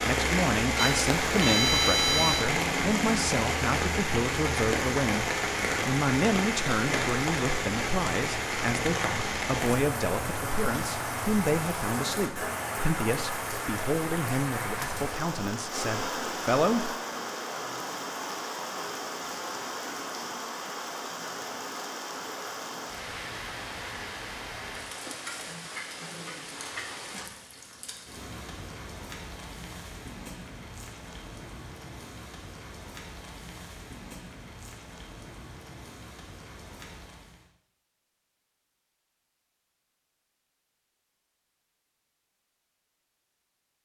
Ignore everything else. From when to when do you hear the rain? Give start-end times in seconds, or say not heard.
0.0-37.5.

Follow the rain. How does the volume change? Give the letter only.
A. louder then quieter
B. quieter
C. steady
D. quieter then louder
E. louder
B.